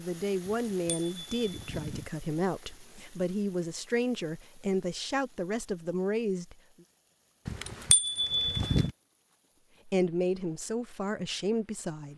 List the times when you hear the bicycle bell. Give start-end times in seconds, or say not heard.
0.5-2.0, 7.5-8.9.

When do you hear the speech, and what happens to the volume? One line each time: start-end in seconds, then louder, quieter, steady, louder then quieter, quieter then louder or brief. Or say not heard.
0.0-6.5 steady
9.8-12.1 brief.